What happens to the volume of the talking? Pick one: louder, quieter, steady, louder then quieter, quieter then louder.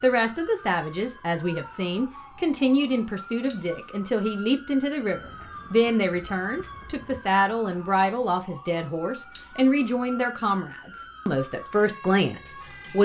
steady.